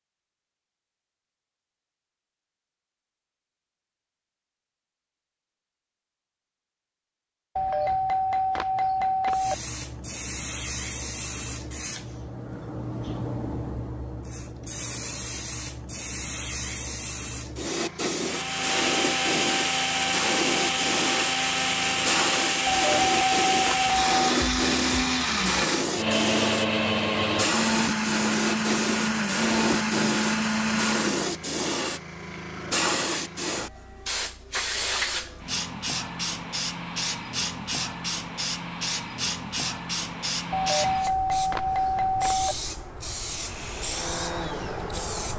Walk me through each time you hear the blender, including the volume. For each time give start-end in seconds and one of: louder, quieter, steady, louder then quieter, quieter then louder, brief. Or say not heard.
18.2-31.4 steady
43.2-45.0 brief.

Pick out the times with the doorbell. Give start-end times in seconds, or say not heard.
7.5-9.6, 22.6-24.1, 40.5-42.5.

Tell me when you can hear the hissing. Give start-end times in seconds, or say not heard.
9.3-45.3.